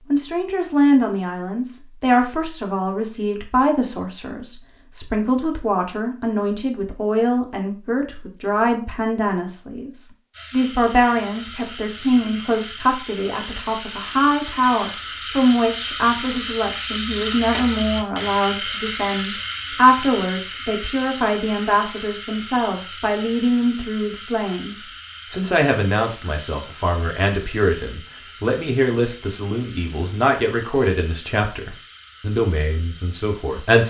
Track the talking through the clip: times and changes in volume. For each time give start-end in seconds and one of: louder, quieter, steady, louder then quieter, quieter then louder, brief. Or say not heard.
0.1-33.8 steady.